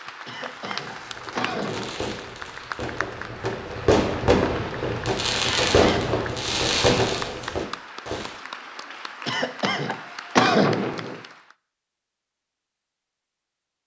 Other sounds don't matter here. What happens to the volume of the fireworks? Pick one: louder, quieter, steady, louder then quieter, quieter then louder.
louder.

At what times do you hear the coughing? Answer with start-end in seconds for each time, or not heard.
0.2-2.1, 5.4-6.2, 9.2-11.2.